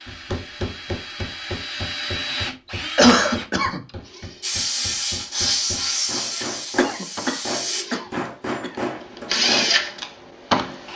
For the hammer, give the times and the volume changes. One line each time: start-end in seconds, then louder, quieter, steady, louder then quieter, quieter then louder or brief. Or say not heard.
0.1-9.8 quieter then louder.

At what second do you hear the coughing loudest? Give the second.
3 s.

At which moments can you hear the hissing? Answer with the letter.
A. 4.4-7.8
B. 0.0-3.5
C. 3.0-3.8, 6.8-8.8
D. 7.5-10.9
A.